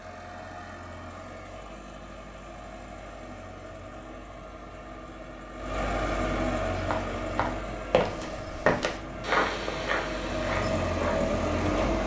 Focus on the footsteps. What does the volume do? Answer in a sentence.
The volume of the footsteps goes down.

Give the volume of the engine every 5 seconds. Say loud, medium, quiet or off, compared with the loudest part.
quiet, medium, loud.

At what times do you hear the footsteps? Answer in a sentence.
The footsteps can be heard from 6.8 to 12.0 s.